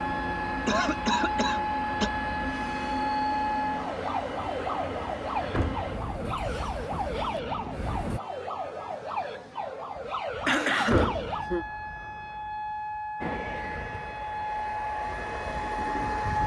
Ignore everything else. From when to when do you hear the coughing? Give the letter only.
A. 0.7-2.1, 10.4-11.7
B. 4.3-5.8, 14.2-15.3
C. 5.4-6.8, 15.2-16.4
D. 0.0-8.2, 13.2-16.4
A.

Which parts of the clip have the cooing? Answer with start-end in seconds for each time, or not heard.
not heard.